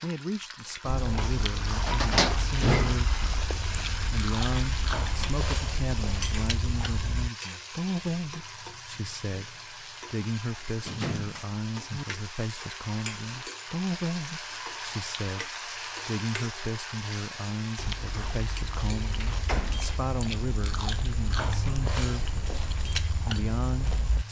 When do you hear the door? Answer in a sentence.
The door can be heard from 1.9 to 3.5 s, from 10.8 to 12.1 s and from 19.2 to 19.9 s.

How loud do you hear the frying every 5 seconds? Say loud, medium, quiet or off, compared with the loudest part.
loud, loud, loud, loud, medium.